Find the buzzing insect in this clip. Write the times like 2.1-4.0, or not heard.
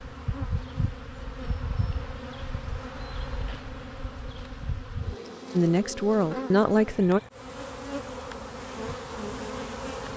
0.0-10.1.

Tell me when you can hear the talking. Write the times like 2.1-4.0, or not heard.
5.5-7.2.